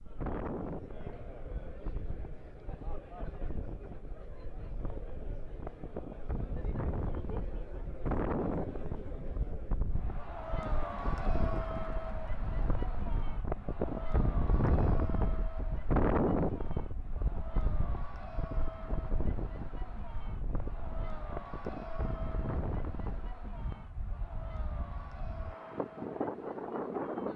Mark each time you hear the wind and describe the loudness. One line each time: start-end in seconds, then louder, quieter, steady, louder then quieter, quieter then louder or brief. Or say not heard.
0.0-27.3 louder then quieter.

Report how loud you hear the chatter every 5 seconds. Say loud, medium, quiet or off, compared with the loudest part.
medium, medium, loud, medium, medium, medium.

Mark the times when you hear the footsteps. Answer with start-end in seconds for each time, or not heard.
not heard.